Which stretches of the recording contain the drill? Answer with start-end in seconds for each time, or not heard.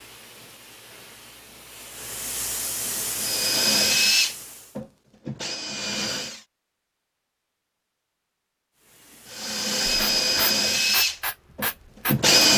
3.1-6.4, 9.3-12.5.